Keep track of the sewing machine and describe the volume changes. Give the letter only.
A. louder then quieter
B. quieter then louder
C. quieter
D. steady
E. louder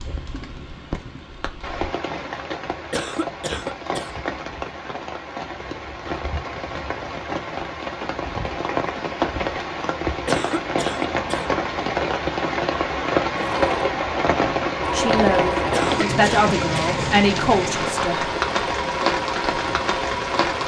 D.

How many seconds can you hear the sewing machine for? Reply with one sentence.
You can hear the sewing machine for 7 seconds altogether.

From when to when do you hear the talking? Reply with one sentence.
You can hear the talking from 14.8 to 18.2 s.